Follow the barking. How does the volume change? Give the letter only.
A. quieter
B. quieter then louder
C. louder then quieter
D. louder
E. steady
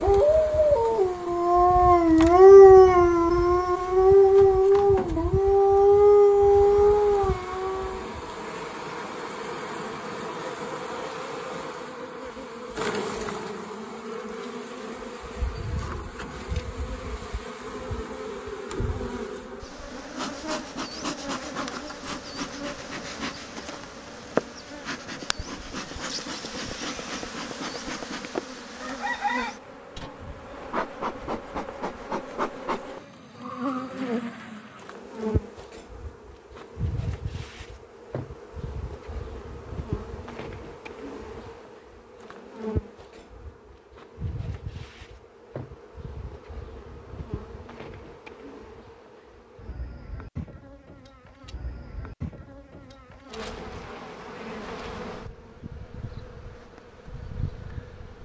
C.